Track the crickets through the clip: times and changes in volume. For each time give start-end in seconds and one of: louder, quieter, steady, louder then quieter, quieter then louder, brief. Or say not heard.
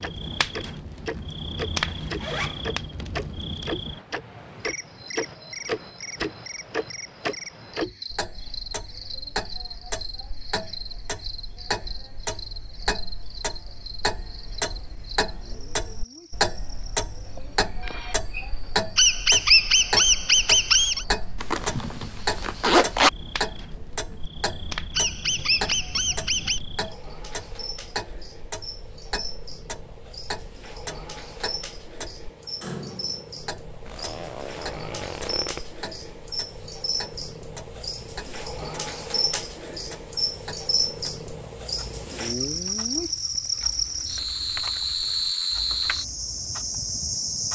0.0-47.5 quieter then louder.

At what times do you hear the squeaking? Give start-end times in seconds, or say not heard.
18.9-21.1, 24.9-26.6.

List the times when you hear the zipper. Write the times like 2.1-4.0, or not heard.
1.9-2.6, 21.4-23.1, 33.9-35.6.